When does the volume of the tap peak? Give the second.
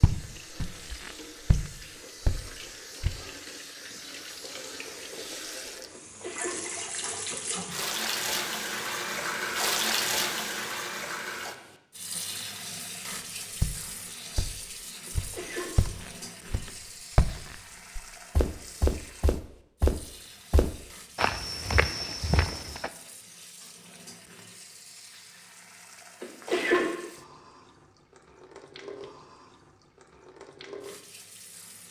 10 s.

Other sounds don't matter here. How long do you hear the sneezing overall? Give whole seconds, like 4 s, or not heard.
2 s.